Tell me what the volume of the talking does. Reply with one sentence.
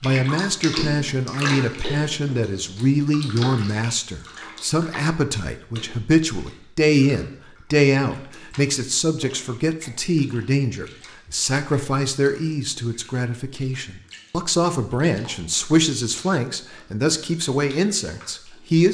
The volume of the talking stays about the same.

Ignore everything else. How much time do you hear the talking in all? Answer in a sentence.
The talking can be heard for 19 seconds in total.